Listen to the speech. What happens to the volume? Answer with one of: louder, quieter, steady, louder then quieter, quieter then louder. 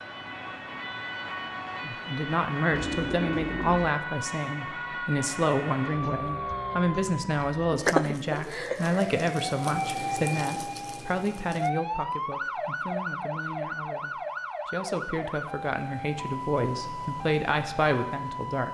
quieter then louder.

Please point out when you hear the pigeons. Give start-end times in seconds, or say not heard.
2.7-3.9.